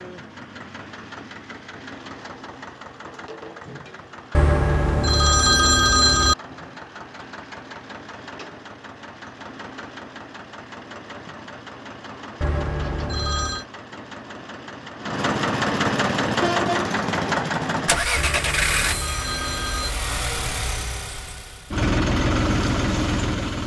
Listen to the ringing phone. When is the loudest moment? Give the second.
6 s.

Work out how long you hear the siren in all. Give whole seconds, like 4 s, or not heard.
not heard.